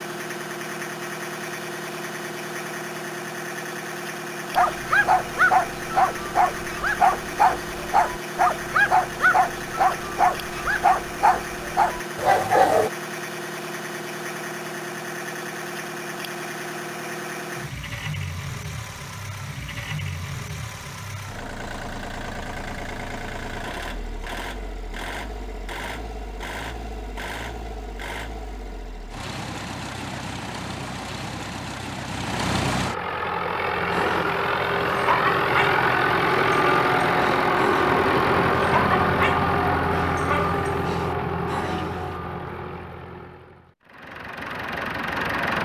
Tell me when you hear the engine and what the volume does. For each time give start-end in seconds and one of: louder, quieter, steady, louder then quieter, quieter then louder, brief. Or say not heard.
0.0-45.6 louder.